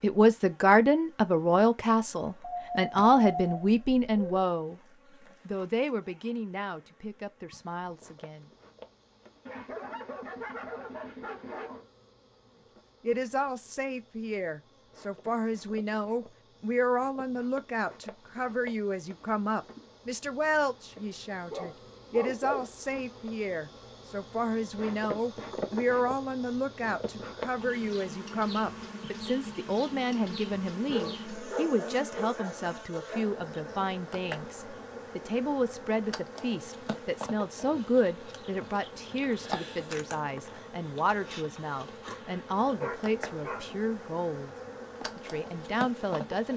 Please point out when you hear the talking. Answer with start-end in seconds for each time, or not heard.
0.0-4.8, 5.5-8.4, 13.0-46.5.